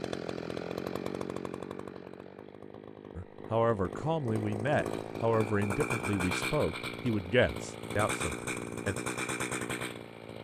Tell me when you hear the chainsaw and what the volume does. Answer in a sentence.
You can hear the chainsaw from 0.0 to 10.3 s, getting quieter then louder.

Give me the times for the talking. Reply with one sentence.
You can hear the talking from 3.1 to 8.9 s.